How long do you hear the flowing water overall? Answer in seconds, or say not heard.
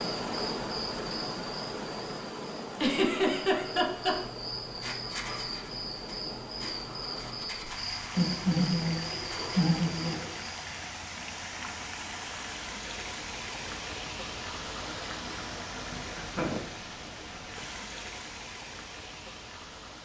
20 s.